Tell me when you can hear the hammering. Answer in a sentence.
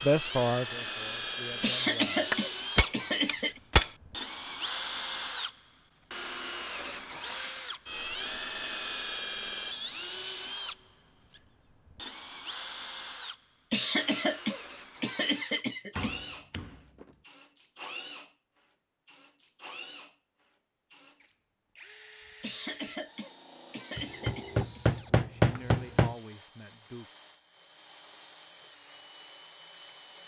You can hear the hammering from 2.0 to 3.9 s, from 15.9 to 17.1 s and from 23.9 to 26.1 s.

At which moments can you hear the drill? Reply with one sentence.
You can hear the drill from 0.0 to 30.2 s.